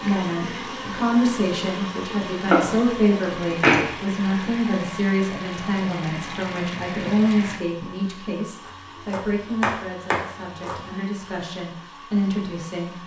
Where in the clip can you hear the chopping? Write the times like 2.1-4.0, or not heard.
2.5-3.9, 8.7-10.8.